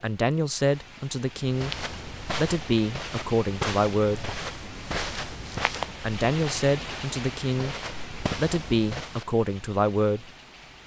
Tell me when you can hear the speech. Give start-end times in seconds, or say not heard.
0.0-1.8, 2.4-4.3, 6.0-7.8, 8.3-10.3.